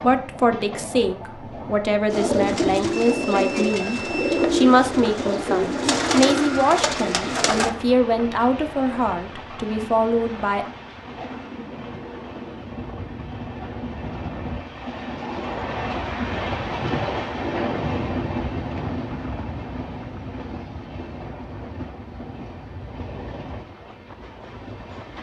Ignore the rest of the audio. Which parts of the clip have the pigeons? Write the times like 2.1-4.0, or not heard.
2.1-7.7.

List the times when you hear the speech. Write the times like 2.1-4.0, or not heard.
0.0-10.7.